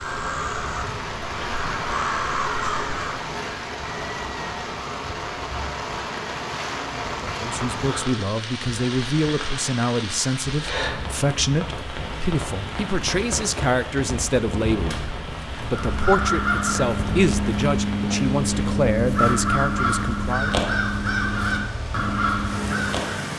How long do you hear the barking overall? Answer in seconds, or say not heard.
not heard.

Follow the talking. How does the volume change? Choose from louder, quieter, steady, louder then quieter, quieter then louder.
steady.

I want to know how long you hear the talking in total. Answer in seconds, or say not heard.
13 s.